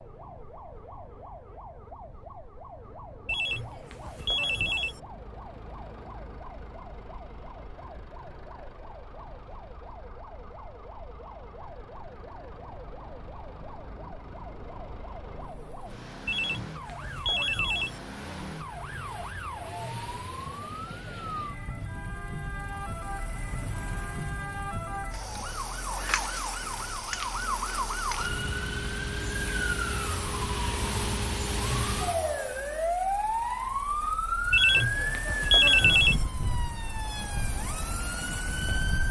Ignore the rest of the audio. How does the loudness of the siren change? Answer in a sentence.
The loudness of the siren goes up.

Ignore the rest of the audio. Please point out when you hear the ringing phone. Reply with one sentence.
You can hear the ringing phone from 3.2 to 5.0 s, from 16.2 to 18.0 s and from 34.5 to 36.2 s.